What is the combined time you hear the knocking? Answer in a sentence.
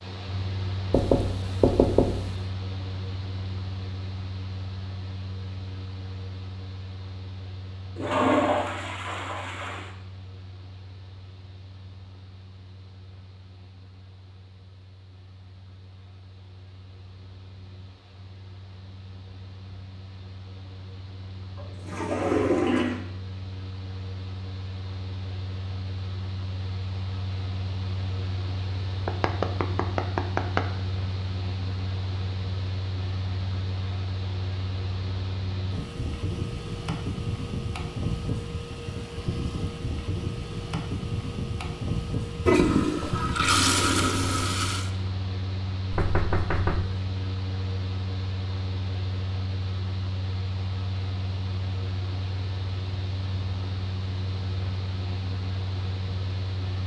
The knocking can be heard for 4 seconds in total.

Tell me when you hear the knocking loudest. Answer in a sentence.
The loudest moment of the knocking is at 2 seconds.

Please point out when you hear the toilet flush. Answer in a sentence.
The toilet flush can be heard from 8.0 to 9.9 s, from 21.6 to 23.0 s and from 42.5 to 44.9 s.